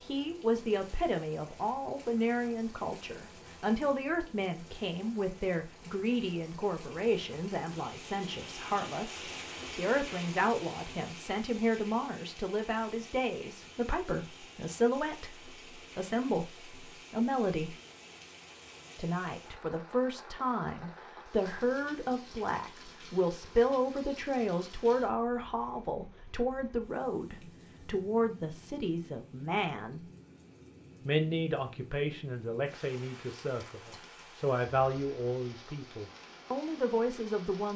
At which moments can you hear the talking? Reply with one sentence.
You can hear the talking from 0.0 to 17.8 s, from 18.9 to 30.1 s and from 31.0 to 37.7 s.